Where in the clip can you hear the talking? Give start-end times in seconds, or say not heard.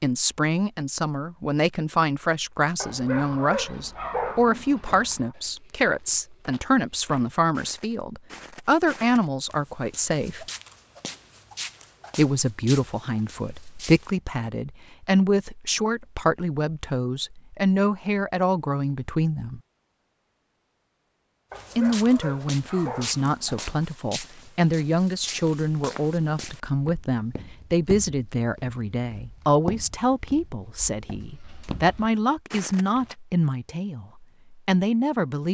0.0-10.4, 12.2-19.6, 21.8-35.4.